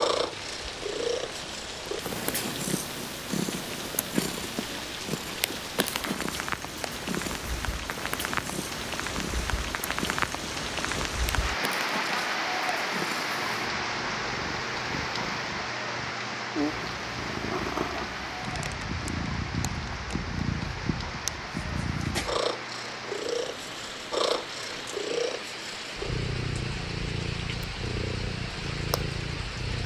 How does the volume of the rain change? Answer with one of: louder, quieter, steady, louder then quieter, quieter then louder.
louder then quieter.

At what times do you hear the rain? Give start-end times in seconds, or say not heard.
0.0-29.8.